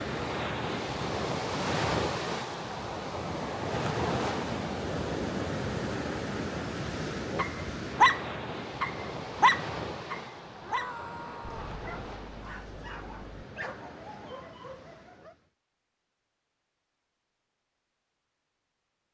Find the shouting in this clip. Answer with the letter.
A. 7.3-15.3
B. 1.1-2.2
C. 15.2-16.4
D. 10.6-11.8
D.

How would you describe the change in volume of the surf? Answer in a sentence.
The volume of the surf goes down.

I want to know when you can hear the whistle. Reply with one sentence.
The whistle can't be heard in this clip.